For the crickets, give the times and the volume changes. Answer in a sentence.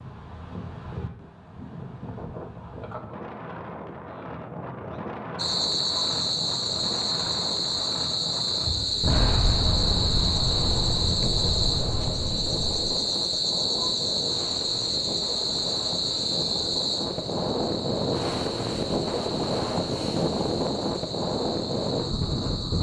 You can hear the crickets from 5.3 to 22.7 s, getting quieter.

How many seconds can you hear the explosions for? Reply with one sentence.
The explosions can be heard for 4 seconds in total.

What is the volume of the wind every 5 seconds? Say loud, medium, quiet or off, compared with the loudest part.
medium, medium, medium, loud, loud.